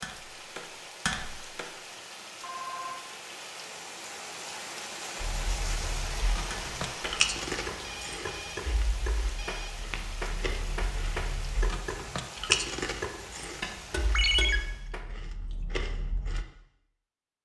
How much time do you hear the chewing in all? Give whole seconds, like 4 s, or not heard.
11 s.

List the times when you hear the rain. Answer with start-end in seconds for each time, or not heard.
0.0-14.9.